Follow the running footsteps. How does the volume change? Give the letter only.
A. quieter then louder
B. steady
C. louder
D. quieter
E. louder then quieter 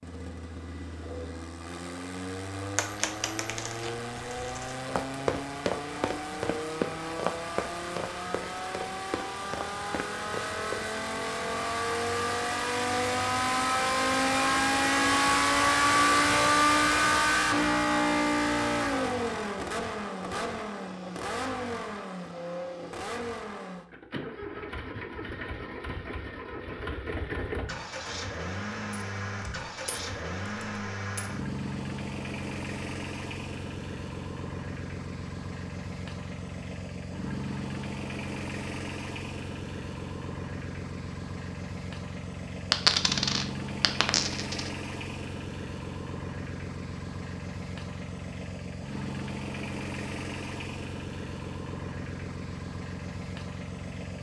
D.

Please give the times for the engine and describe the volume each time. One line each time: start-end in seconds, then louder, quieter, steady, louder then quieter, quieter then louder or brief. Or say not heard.
0.0-54.1 louder then quieter.